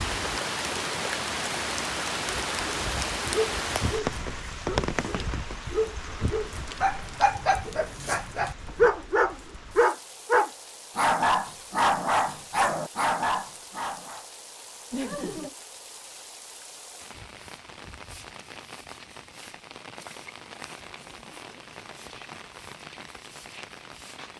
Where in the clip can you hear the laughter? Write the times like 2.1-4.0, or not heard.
14.9-15.6.